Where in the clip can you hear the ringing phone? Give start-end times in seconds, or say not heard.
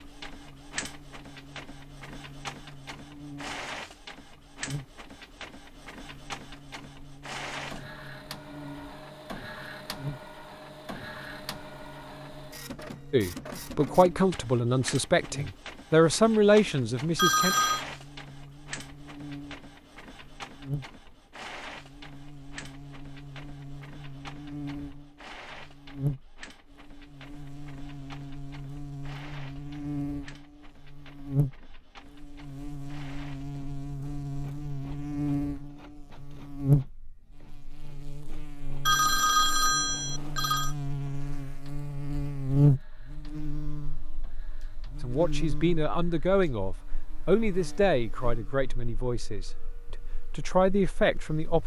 17.1-17.9, 38.9-40.8.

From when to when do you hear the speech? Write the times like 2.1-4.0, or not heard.
13.1-17.6, 45.0-51.6.